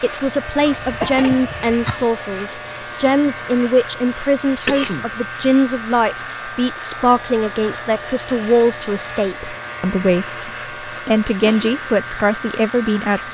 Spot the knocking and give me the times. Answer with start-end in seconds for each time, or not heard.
not heard.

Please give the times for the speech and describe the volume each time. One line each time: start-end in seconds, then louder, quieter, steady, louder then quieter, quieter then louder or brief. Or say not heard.
0.0-13.3 steady.